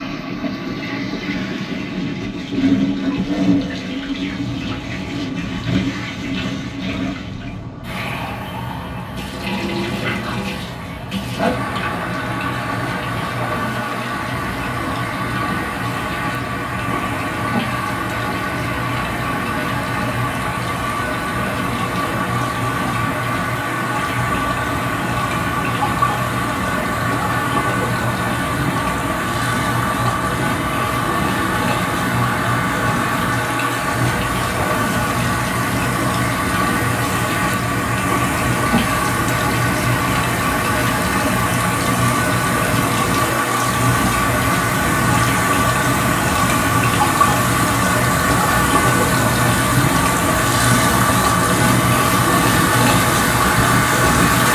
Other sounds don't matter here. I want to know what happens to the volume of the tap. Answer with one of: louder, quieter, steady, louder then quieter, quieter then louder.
louder.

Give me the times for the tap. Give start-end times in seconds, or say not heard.
0.0-54.5.